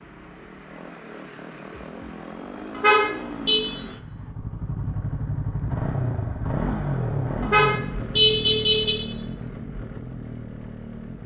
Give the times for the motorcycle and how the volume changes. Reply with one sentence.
The motorcycle can be heard from 0.0 to 11.2 s, getting louder then quieter.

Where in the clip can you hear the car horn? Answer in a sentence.
The car horn can be heard from 2.8 to 3.6 s and from 7.4 to 8.9 s.